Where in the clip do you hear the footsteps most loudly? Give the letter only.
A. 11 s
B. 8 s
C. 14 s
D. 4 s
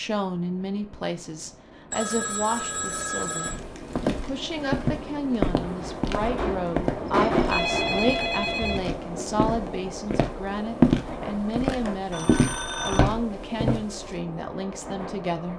A.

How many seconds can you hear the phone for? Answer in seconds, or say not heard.
4 s.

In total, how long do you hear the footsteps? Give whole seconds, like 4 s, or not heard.
11 s.